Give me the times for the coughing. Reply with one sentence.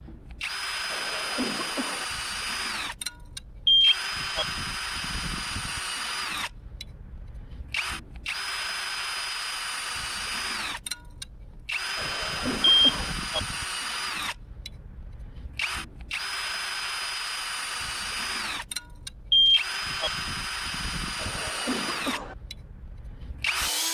You can hear the coughing from 0.9 to 2.0 s, from 11.9 to 13.2 s and from 21.1 to 22.4 s.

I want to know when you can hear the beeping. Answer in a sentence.
You can hear the beeping from 3.6 to 4.5 s, from 12.6 to 13.4 s and from 19.3 to 20.1 s.